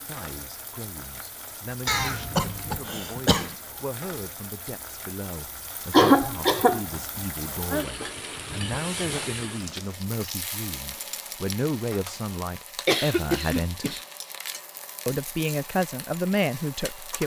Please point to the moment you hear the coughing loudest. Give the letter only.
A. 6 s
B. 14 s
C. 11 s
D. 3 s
A.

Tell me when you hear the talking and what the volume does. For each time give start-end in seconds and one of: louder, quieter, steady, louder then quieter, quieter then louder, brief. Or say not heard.
0.0-14.0 louder
15.1-17.2 brief.